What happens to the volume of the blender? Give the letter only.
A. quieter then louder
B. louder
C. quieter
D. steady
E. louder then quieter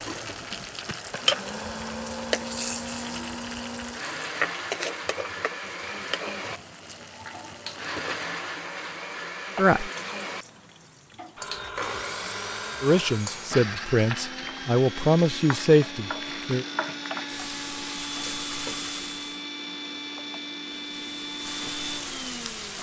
D.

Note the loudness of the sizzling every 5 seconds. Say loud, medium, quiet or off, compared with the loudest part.
loud, medium, medium, medium, medium.